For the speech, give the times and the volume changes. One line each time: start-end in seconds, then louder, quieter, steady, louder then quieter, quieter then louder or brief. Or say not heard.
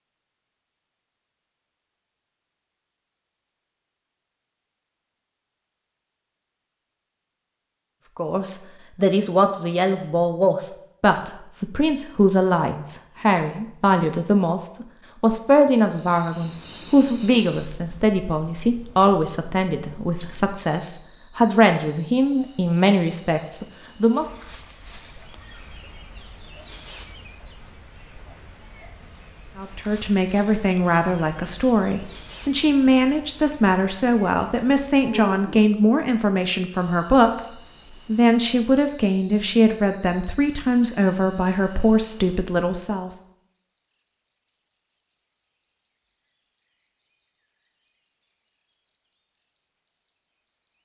8.2-24.2 steady
29.6-43.1 steady.